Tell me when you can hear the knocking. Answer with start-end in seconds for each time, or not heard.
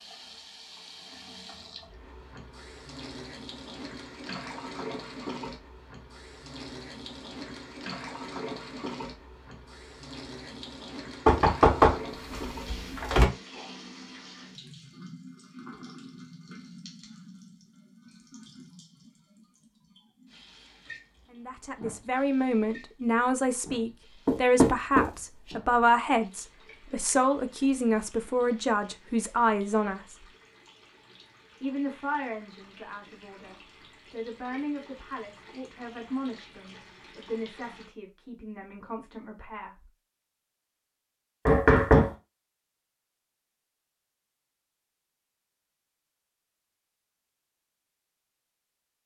11.2-13.2, 24.2-25.1, 41.5-42.1.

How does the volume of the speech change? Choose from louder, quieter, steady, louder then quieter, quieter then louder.
quieter.